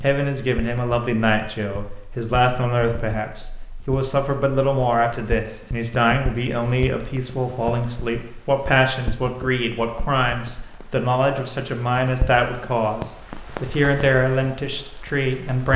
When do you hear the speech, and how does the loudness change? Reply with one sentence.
You can hear the speech from 0.0 to 15.7 s, at a steady volume.